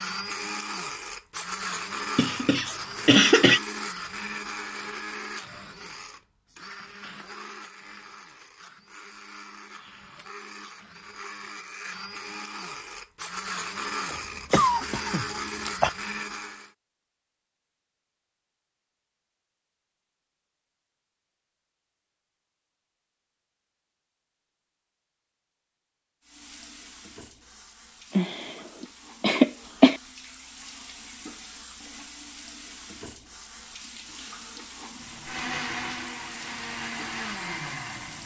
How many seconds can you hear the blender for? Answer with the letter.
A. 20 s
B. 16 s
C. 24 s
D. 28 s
A.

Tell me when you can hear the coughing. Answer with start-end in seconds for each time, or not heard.
2.1-3.6, 14.1-15.9, 28.1-30.0.